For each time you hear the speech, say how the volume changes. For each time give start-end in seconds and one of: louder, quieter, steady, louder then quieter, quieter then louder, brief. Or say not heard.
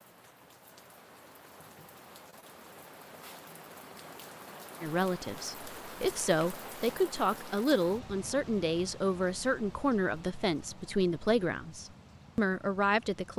4.8-13.3 steady.